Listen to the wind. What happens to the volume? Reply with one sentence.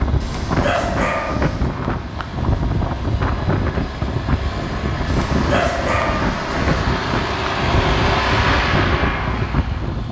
The volume of the wind stays about the same.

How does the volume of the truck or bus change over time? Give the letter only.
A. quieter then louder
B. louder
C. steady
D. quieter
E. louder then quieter
B.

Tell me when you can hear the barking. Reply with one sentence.
You can hear the barking from 0.2 to 1.7 s and from 5.0 to 6.8 s.